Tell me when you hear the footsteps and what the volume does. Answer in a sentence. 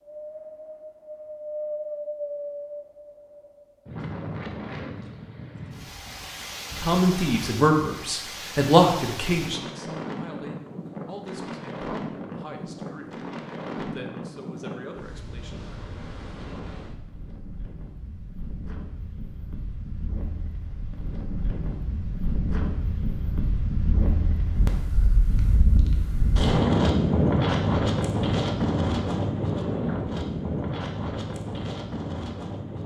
The footsteps can't be heard in this clip.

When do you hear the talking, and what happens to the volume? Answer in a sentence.
You can hear the talking from 6.8 to 15.8 s, getting quieter.